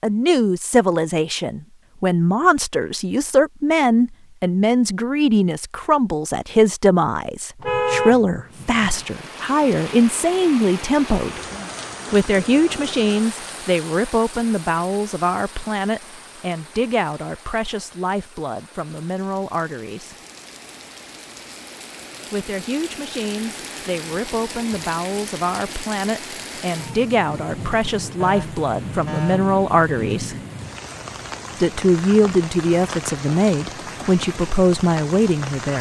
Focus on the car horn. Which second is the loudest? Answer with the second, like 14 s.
8 s.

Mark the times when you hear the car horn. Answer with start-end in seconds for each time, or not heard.
7.6-9.1, 28.2-30.2.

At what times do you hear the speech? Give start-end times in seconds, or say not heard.
0.0-11.4, 12.1-20.1, 22.3-30.4, 31.6-35.7.